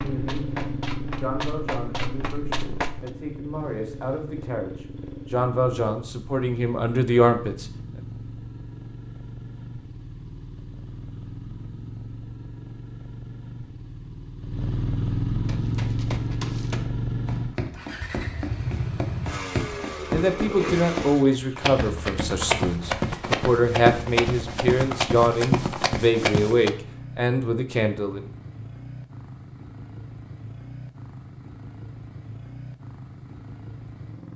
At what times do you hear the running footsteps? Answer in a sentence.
The running footsteps can be heard from 0.0 to 3.1 s and from 15.4 to 26.7 s.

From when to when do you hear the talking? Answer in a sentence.
You can hear the talking from 0.0 to 7.7 s and from 20.1 to 28.2 s.